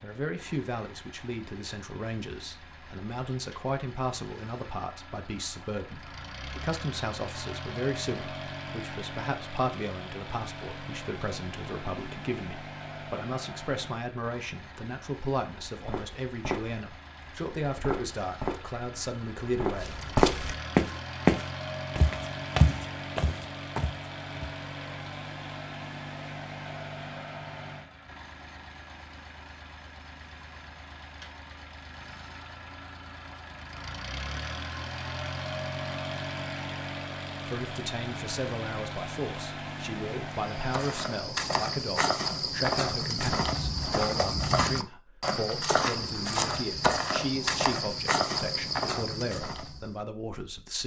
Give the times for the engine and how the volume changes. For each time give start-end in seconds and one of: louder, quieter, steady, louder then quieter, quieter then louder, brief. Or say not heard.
0.0-41.4 louder.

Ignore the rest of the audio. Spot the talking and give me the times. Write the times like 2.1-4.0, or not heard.
0.0-19.9, 37.5-50.8.